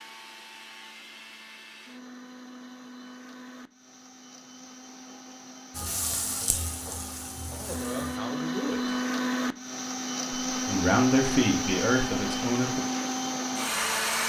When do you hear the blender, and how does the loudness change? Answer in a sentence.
The blender can be heard from 0.0 to 14.2 s, getting louder.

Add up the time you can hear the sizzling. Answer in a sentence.
The sizzling can be heard for 2 seconds in total.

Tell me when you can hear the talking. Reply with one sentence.
You can hear the talking from 7.5 to 8.9 s and from 10.6 to 12.8 s.